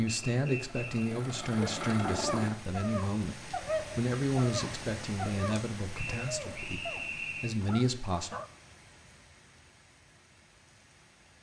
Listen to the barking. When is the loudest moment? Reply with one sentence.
The loudest moment of the barking is at 4 seconds.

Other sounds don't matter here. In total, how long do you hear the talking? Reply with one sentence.
The talking can be heard for 8 seconds in total.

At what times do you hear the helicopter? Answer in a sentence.
The helicopter can be heard from 0.0 to 2.5 s.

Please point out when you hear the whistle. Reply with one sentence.
You can hear the whistle from 0.2 to 1.1 s and from 5.9 to 7.6 s.